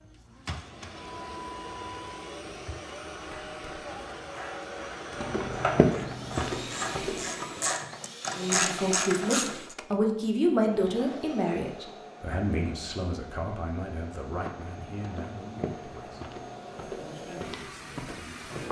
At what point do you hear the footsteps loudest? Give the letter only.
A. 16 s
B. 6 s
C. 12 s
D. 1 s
B.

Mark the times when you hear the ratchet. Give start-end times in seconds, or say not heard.
3.2-9.8.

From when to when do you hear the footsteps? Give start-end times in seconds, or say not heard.
5.2-7.7, 14.2-18.6.